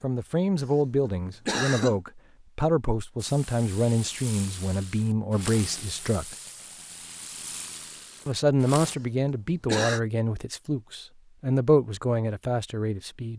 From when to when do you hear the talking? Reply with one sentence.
You can hear the talking from 0.0 to 6.3 s and from 8.2 to 13.3 s.